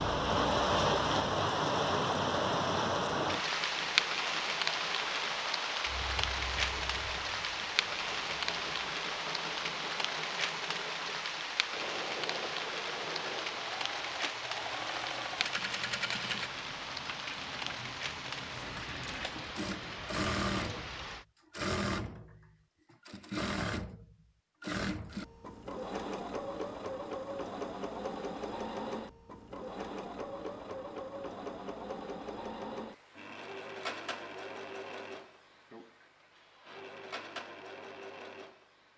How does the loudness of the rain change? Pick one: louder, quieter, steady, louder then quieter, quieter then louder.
quieter.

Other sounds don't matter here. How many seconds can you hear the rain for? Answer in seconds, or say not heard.
21 s.